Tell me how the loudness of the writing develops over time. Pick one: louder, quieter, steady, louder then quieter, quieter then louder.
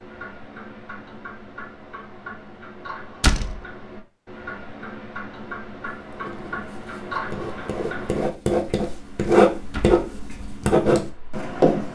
louder.